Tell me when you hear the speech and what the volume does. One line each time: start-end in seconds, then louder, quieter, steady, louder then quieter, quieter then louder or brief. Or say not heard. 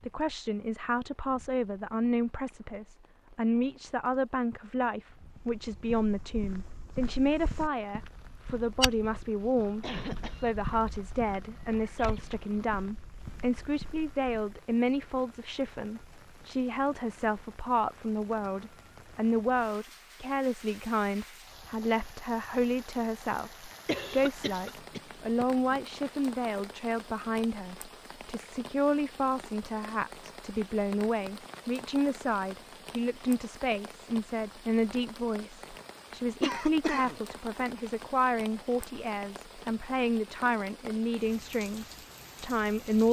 0.0-43.0 steady.